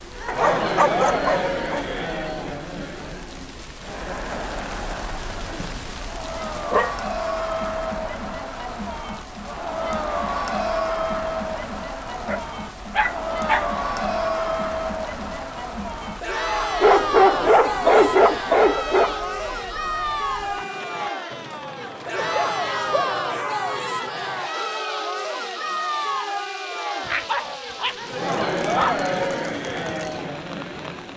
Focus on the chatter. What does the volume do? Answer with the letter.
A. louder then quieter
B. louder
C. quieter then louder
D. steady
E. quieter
D.